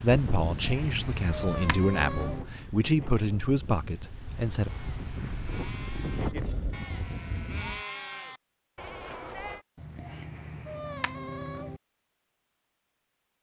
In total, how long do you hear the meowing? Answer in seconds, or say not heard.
4 s.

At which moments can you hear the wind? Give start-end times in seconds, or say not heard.
0.0-7.8.